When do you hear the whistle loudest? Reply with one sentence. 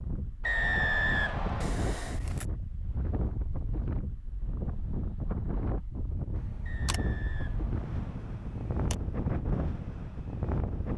The loudest moment of the whistle is at 1 second.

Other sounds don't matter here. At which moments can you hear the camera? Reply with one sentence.
The camera can be heard from 1.6 to 2.5 s and from 6.3 to 8.9 s.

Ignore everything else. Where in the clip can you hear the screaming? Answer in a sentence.
The screaming can't be heard in this clip.